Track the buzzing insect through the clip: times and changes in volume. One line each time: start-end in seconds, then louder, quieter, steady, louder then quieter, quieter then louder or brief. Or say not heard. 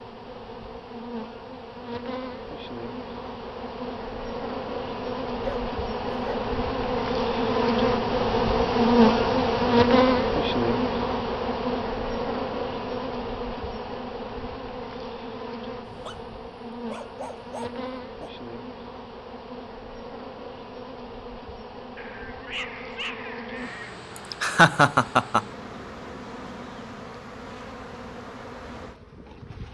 0.0-29.7 louder then quieter.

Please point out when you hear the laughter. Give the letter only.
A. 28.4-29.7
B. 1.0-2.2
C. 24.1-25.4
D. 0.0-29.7
C.